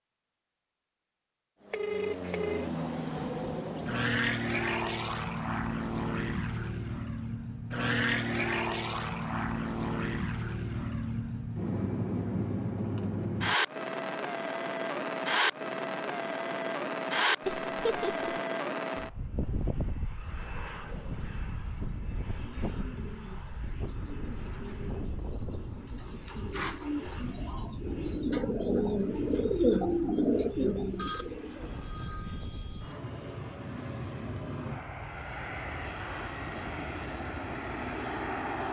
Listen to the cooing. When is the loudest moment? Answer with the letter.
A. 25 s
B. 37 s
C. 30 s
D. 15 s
C.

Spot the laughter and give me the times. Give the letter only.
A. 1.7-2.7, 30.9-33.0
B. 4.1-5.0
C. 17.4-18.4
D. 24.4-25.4
C.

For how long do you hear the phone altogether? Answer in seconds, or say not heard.
3 s.